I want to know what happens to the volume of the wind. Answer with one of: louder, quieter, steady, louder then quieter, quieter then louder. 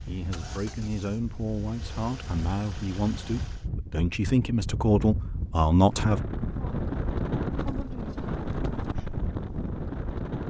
louder.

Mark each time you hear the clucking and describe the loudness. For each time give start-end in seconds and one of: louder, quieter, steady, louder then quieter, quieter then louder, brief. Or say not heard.
not heard.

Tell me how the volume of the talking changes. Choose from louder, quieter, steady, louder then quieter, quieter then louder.
louder.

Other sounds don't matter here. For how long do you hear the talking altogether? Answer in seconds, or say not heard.
6 s.